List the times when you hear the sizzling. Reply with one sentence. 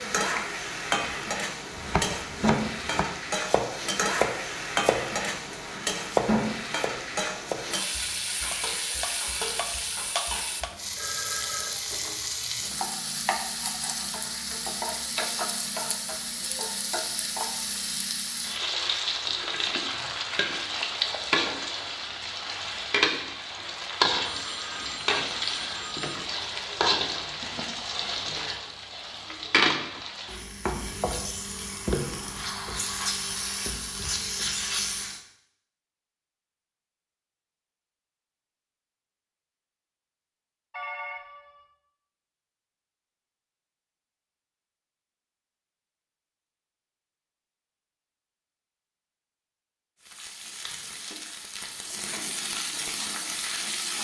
You can hear the sizzling from 0.0 to 35.2 s and from 50.0 to 53.9 s.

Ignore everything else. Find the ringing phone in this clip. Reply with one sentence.
You can hear the ringing phone from 10.8 to 11.7 s, from 24.2 to 26.1 s and from 40.7 to 41.6 s.